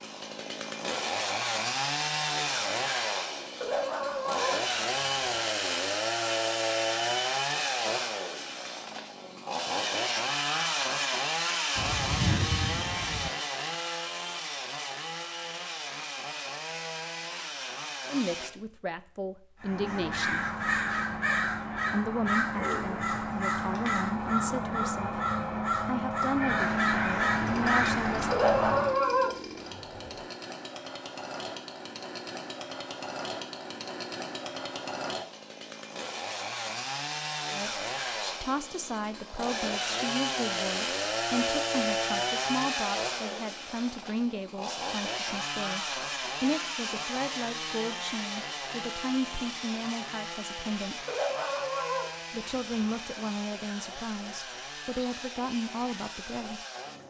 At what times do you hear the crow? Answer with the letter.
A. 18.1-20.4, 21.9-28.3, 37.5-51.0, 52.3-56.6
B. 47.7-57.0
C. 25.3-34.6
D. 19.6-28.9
D.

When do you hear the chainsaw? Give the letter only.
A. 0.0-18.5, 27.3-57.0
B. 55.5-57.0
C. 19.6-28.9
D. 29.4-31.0
A.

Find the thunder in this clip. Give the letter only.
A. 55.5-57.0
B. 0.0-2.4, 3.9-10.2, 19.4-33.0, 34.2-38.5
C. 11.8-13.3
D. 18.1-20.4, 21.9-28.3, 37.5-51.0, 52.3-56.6
C.